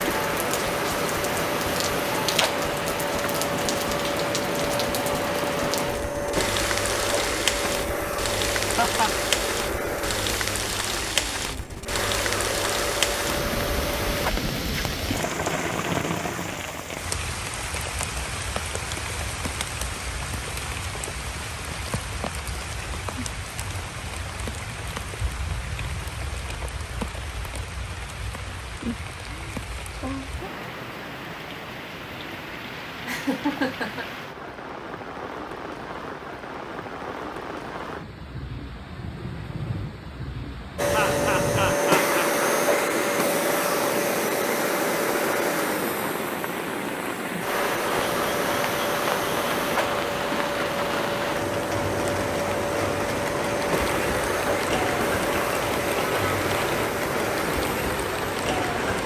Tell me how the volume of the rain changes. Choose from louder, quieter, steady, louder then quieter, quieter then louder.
quieter then louder.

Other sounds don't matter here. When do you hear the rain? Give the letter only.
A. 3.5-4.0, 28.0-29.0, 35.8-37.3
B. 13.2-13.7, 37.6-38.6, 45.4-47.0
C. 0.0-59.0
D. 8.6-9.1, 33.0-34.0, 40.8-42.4
C.